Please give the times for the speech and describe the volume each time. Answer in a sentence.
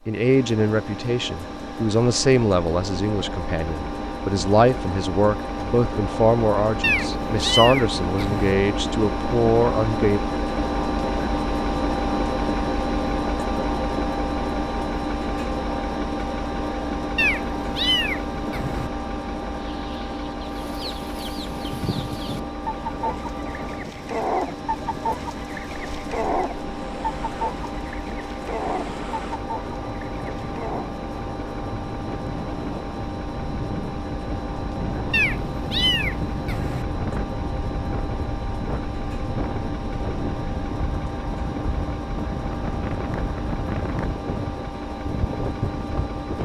The speech can be heard from 0.1 to 10.2 s, at a steady volume.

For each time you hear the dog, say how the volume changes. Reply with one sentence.
The dog can't be heard in this clip.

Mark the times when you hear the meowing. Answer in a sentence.
You can hear the meowing from 6.8 to 8.6 s, from 17.1 to 18.9 s and from 35.1 to 36.9 s.